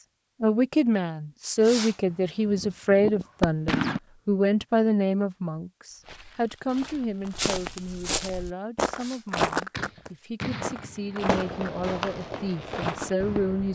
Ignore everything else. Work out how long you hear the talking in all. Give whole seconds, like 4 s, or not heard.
13 s.